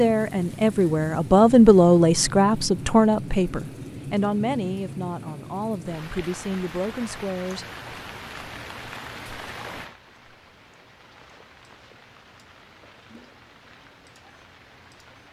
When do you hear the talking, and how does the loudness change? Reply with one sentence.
You can hear the talking from 0.0 to 7.7 s, getting quieter.